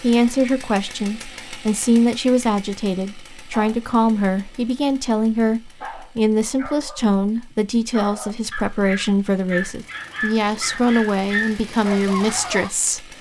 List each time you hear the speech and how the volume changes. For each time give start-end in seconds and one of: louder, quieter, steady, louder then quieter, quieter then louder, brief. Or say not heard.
0.0-13.1 steady.